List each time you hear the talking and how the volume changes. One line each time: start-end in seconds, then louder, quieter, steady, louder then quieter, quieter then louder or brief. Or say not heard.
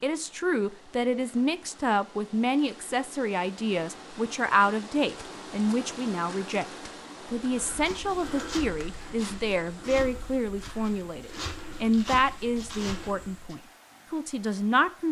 0.0-15.0 steady.